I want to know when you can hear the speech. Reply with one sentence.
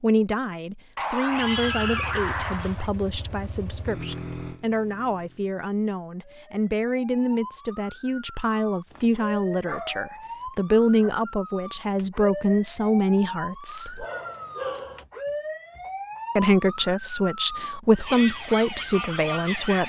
You can hear the speech from 0.0 to 14.1 s and from 16.4 to 19.8 s.